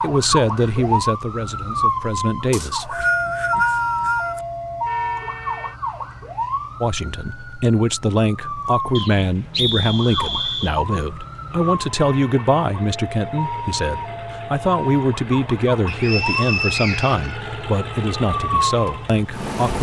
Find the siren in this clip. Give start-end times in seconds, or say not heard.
0.0-19.6.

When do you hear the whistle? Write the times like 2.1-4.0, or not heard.
2.5-4.4, 8.9-10.8, 15.8-17.4.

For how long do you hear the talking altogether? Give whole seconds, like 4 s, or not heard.
16 s.